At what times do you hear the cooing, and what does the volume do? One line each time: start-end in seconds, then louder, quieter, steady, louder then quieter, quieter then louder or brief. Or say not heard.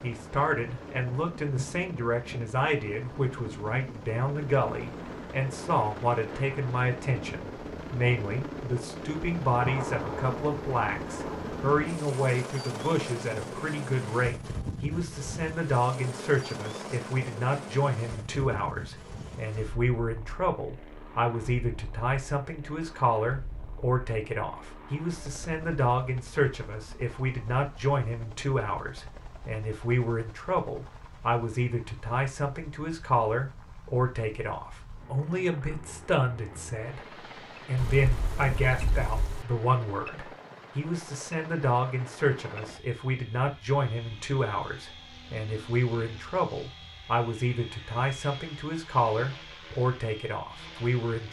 not heard.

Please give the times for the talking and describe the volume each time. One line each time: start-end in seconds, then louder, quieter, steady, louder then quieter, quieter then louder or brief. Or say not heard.
0.0-51.2 steady.